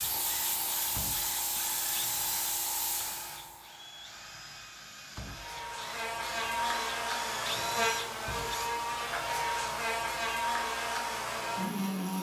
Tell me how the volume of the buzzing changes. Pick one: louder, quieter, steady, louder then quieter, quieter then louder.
steady.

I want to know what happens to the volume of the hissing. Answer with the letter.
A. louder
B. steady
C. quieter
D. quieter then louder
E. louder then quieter
C.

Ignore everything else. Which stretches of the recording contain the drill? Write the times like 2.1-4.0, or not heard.
0.0-8.7.